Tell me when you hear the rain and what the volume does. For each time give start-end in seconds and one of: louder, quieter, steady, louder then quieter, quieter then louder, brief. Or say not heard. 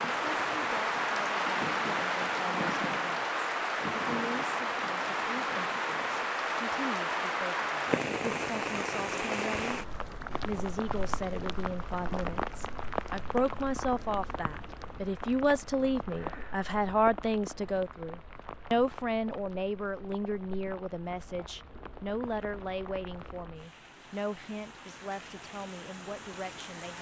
0.0-26.9 quieter.